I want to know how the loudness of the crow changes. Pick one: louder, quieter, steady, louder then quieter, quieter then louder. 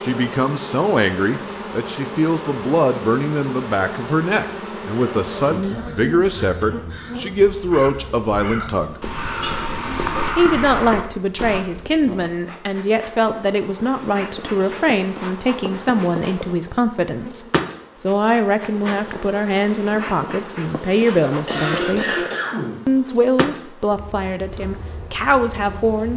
louder.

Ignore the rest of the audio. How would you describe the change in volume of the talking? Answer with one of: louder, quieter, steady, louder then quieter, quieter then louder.
steady.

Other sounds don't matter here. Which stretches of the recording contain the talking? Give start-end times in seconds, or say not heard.
0.0-9.0, 10.3-22.1, 22.9-26.1.